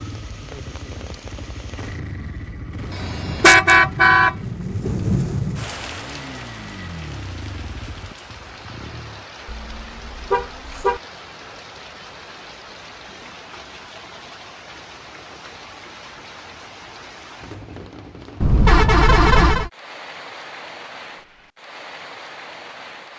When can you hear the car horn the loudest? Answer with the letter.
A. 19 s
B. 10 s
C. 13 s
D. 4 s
D.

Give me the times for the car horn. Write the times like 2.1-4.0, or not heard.
2.9-4.3, 9.4-11.0, 18.4-19.7.